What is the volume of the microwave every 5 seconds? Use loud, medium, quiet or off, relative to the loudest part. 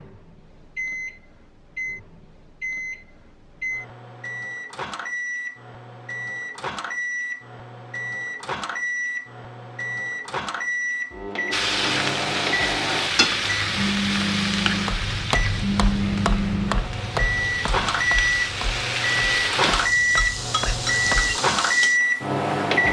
quiet, medium, medium, loud, loud.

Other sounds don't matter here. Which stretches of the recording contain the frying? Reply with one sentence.
The frying can be heard from 11.5 to 22.8 s.